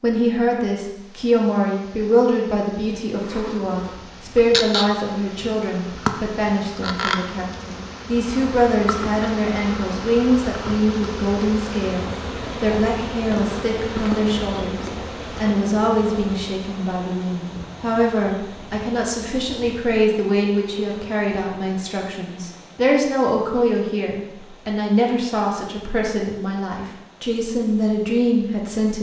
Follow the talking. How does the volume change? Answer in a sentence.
The loudness of the talking stays about the same.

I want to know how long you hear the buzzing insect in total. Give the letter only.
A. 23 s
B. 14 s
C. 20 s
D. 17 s
D.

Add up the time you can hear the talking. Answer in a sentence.
You can hear the talking for 29 seconds altogether.